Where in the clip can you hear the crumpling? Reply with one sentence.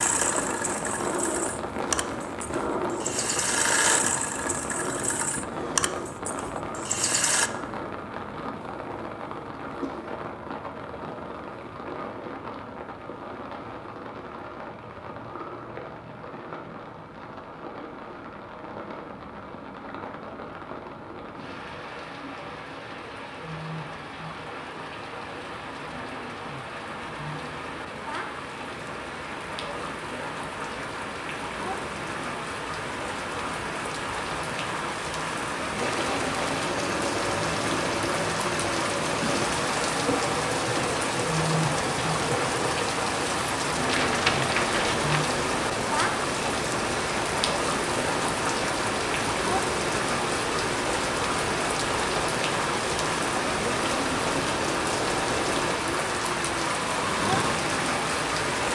The crumpling can be heard from 43.9 to 45.2 s.